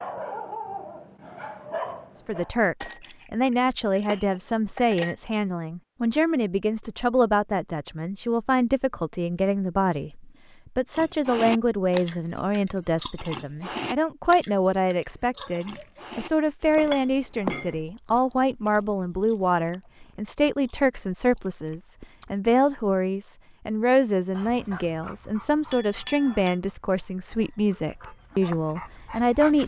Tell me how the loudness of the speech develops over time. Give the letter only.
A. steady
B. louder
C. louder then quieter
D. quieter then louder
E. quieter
A.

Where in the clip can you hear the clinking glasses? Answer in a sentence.
The clinking glasses can be heard from 2.8 to 5.3 s, from 16.8 to 17.8 s and from 25.7 to 26.6 s.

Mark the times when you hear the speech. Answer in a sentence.
You can hear the speech from 2.2 to 29.6 s.